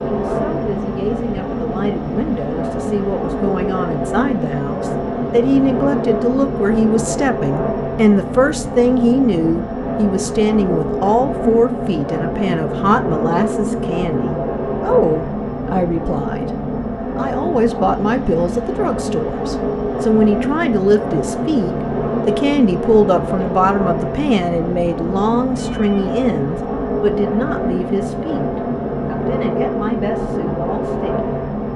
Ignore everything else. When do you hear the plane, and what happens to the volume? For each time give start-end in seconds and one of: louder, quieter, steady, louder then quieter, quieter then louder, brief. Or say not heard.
0.0-31.7 steady.